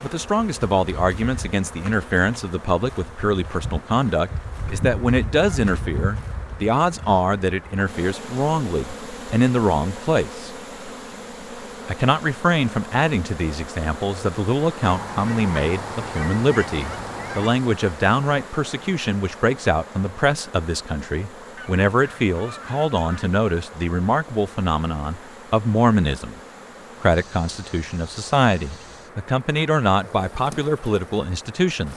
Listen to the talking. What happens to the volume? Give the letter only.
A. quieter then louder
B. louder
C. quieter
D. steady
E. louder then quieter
D.